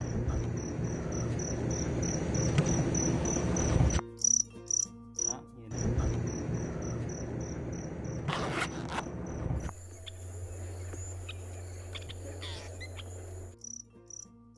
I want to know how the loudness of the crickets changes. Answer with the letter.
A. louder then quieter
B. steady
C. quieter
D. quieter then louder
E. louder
C.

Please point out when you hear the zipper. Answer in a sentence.
You can hear the zipper from 8.2 to 9.1 s.